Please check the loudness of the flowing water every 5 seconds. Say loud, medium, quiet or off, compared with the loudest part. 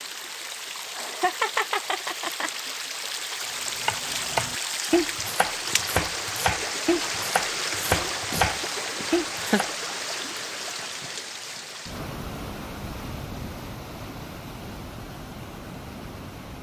loud, loud, medium, medium.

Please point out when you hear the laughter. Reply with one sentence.
The laughter can be heard from 0.7 to 2.7 s and from 9.0 to 9.6 s.